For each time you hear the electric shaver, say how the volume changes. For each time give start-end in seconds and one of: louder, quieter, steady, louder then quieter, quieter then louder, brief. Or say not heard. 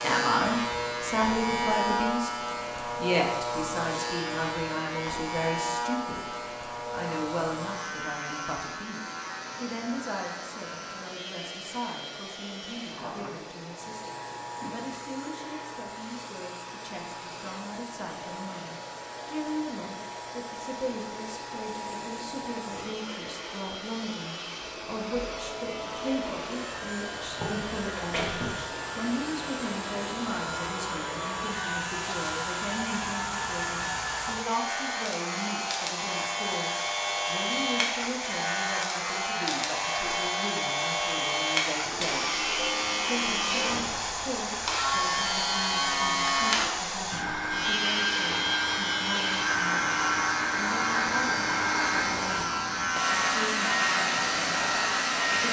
0.0-55.4 quieter then louder.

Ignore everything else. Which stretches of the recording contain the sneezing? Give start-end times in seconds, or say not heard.
27.4-28.6.